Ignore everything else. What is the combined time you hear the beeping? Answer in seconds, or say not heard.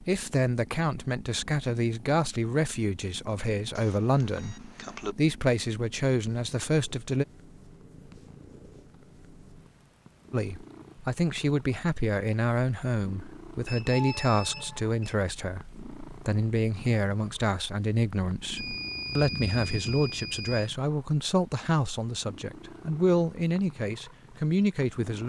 5 s.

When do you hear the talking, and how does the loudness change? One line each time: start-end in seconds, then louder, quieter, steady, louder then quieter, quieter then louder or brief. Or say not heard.
0.0-7.2 steady
10.3-25.2 steady.